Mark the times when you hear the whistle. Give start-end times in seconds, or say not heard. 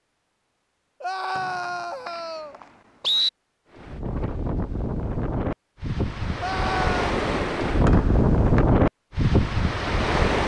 1.4-3.3, 7.8-8.6.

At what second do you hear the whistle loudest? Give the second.
3 s.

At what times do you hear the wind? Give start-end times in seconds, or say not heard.
3.7-10.4.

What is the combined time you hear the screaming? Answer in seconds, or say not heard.
2 s.